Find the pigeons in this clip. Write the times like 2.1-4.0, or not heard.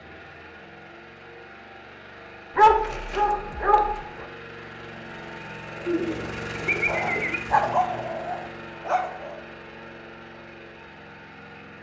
5.8-7.4.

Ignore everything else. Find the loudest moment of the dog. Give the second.
3 s.